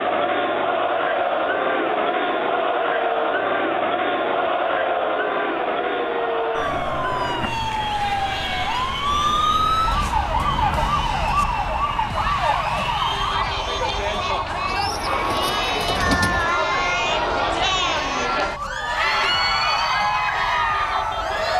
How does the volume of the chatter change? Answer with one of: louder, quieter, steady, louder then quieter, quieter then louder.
quieter then louder.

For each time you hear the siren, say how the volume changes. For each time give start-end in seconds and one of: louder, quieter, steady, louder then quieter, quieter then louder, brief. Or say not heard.
0.1-21.5 louder then quieter.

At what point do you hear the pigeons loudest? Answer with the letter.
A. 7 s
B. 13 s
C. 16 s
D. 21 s
C.